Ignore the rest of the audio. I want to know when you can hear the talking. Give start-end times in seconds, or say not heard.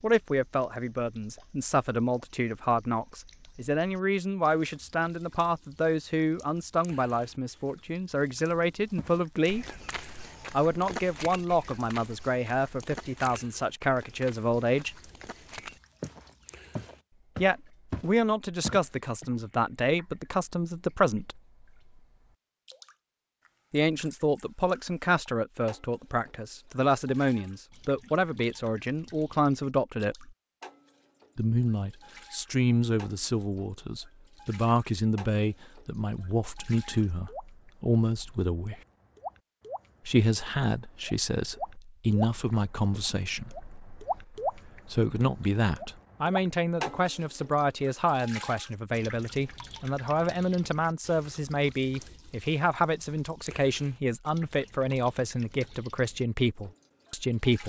0.0-9.7, 10.5-14.9, 17.4-21.4, 23.7-30.3, 31.4-38.8, 40.0-57.6.